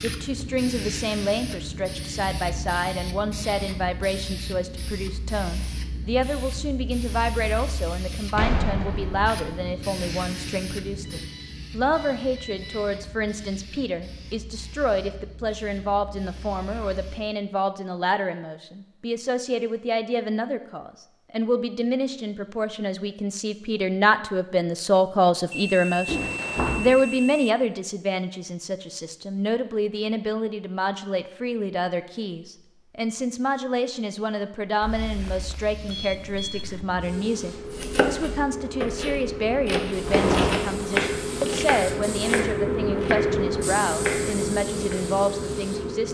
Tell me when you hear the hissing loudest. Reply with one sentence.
The loudest moment of the hissing is at 43 seconds.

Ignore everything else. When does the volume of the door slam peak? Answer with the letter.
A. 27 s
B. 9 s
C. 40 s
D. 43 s
C.